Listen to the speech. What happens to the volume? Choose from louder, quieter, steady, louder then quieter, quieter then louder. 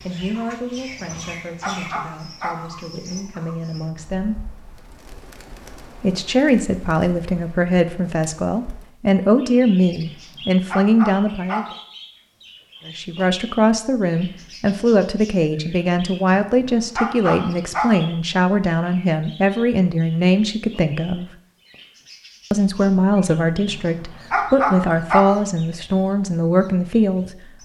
louder.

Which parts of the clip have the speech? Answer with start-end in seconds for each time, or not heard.
0.0-4.4, 6.0-11.7, 12.8-21.2, 22.5-27.6.